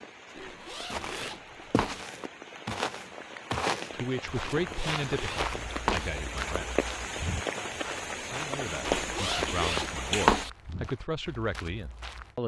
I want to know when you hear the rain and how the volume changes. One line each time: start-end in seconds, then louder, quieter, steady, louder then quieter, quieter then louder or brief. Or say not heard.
0.0-10.4 louder.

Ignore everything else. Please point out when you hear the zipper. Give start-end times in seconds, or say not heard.
0.3-2.0, 4.5-6.1, 8.8-10.5.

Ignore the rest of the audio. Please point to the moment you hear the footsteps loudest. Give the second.
4 s.